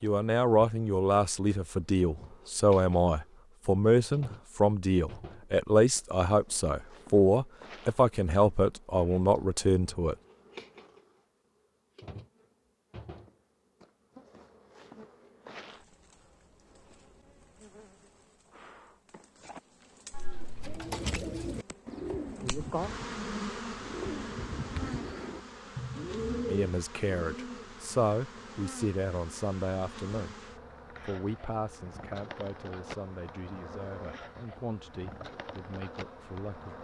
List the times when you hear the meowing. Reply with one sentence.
The meowing can be heard from 20.1 to 20.8 s.